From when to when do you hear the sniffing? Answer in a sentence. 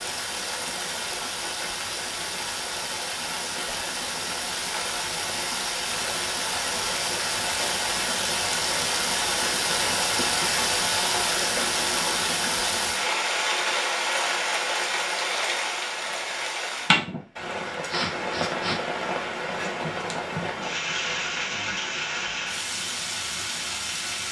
You can hear the sniffing from 17.7 to 18.8 s.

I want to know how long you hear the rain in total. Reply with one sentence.
You can hear the rain for 24 seconds altogether.